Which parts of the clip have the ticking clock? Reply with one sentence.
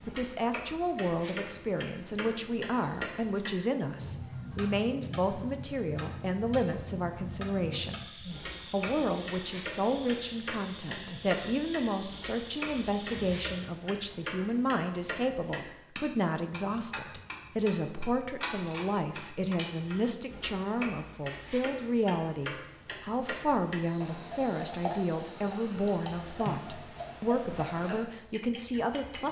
The ticking clock can be heard from 0.0 to 29.2 s.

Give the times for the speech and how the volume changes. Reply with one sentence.
The speech can be heard from 0.0 to 29.2 s, at a steady volume.